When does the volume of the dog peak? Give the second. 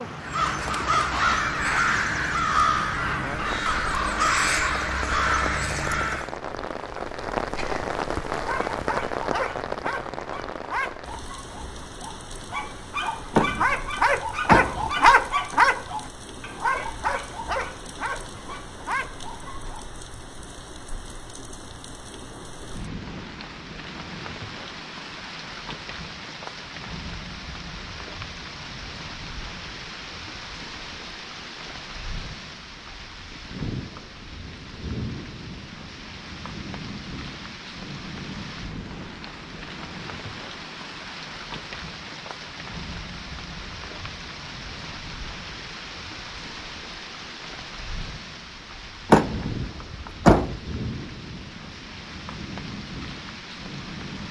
15 s.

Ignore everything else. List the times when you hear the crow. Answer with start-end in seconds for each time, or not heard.
0.2-6.3.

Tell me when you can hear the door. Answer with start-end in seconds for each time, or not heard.
13.3-14.9, 49.1-50.6.